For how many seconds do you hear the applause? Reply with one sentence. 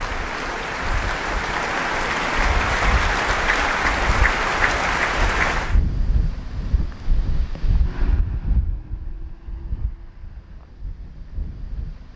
You can hear the applause for 6 seconds altogether.